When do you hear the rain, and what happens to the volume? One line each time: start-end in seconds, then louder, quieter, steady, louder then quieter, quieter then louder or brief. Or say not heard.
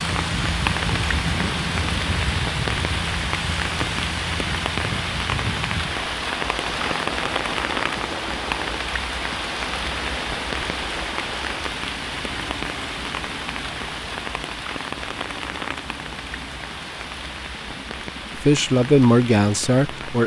0.0-20.2 quieter.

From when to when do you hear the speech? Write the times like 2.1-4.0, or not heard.
18.4-20.2.